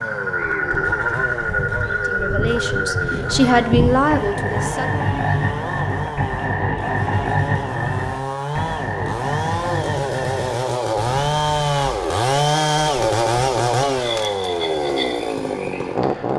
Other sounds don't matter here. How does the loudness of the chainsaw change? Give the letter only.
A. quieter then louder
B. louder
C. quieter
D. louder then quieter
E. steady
B.